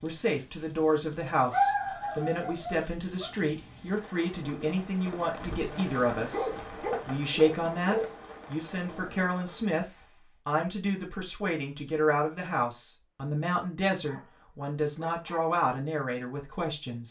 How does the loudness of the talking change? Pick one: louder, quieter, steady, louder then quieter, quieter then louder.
steady.